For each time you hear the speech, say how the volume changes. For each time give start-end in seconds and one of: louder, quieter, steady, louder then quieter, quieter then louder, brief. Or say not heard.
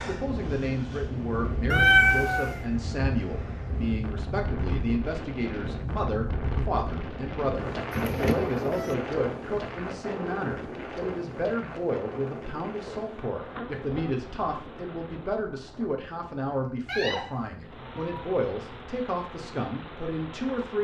0.0-20.8 steady.